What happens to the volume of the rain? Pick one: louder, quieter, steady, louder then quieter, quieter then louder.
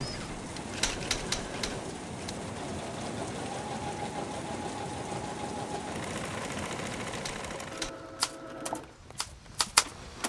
quieter.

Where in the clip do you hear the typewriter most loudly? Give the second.
10 s.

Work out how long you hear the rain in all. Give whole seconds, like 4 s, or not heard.
10 s.